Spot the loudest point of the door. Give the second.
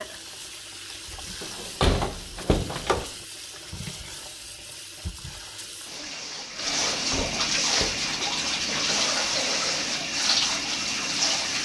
2 s.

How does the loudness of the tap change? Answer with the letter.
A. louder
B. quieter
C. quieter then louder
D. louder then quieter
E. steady
A.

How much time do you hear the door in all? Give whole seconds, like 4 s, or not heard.
3 s.